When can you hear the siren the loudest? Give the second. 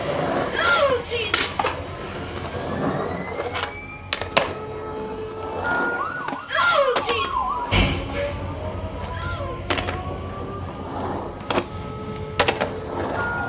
7 s.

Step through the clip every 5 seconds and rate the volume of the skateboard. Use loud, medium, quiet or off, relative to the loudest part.
loud, medium, loud.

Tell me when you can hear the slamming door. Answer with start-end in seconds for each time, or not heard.
7.0-8.4.